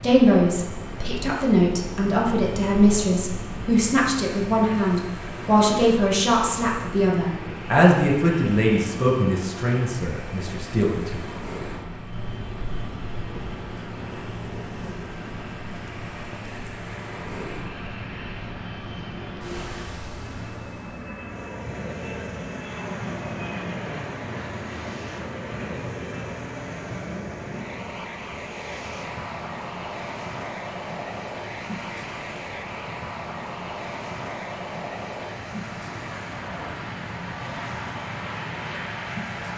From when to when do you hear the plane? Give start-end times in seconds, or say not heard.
0.0-39.5.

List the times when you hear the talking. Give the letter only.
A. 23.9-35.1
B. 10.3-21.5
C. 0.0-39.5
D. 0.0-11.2
D.